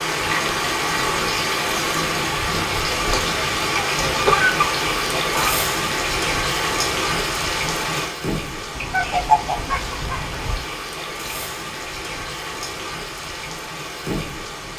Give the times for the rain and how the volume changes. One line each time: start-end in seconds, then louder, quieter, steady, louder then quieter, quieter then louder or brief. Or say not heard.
0.0-14.7 quieter.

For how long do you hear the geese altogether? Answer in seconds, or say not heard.
4 s.